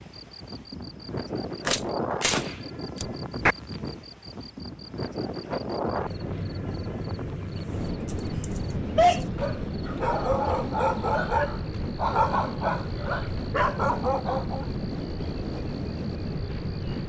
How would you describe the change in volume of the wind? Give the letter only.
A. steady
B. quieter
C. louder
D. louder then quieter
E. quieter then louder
A.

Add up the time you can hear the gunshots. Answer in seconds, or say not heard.
2 s.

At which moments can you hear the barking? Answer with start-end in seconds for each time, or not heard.
8.1-14.7.